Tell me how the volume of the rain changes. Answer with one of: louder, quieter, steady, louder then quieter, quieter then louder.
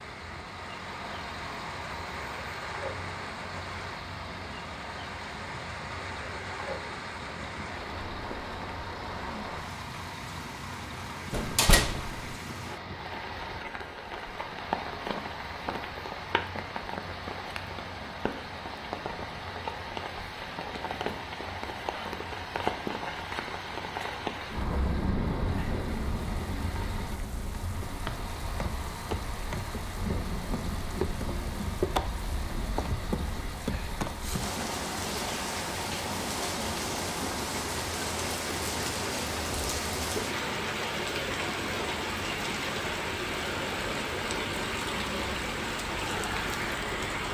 louder.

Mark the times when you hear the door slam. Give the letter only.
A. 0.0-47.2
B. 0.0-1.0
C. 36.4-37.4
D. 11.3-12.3
D.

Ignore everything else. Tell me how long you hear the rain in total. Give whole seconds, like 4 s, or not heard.
47 s.